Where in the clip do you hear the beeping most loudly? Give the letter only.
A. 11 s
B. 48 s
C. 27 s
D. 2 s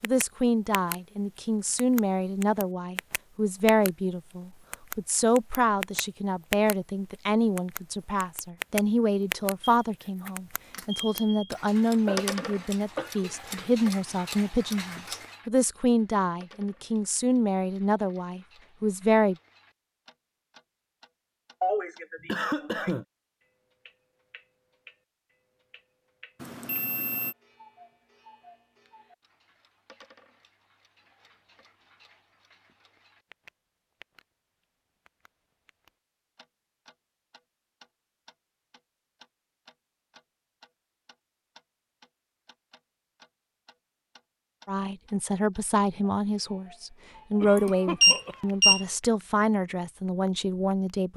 B.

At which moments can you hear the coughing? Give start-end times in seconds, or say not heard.
12.1-13.3, 21.6-23.1, 47.4-48.8.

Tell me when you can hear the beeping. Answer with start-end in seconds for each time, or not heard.
9.6-11.5, 26.4-27.4, 47.5-48.9.